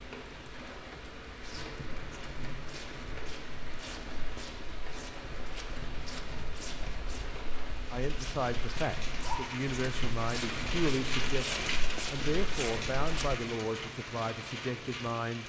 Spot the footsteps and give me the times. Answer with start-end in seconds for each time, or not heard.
1.4-13.4.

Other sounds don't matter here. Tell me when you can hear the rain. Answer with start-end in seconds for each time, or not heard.
0.0-15.4.